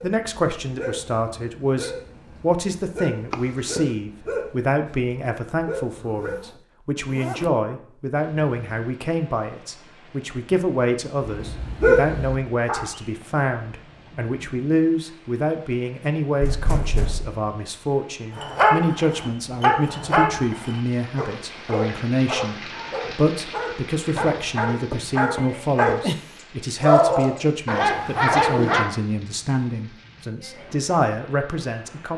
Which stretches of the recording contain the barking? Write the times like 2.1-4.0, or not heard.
0.0-6.4, 11.2-12.8, 18.4-26.0, 26.8-28.9.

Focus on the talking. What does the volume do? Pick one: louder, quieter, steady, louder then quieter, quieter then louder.
steady.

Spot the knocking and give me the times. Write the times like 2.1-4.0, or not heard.
3.3-3.9, 16.4-17.4, 24.9-26.2.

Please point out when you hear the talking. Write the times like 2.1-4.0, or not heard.
0.0-32.1.